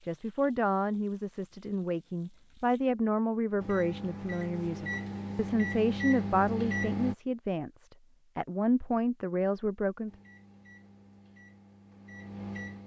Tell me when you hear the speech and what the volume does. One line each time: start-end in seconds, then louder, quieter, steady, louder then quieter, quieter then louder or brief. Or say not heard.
0.1-10.1 steady.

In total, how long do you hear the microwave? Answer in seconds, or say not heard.
6 s.